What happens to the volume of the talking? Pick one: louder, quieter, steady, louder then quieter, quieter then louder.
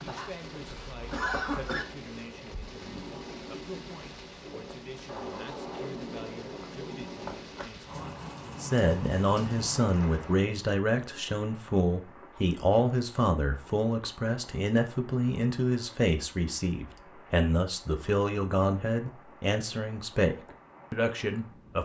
louder.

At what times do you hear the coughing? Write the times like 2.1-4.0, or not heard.
0.7-1.9.